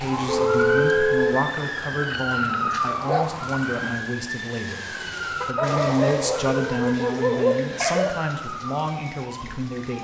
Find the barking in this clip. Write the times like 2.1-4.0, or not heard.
1.6-3.3, 5.5-8.2.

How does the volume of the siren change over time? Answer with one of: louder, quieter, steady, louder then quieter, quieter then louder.
quieter.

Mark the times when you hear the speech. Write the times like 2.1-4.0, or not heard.
0.0-9.9.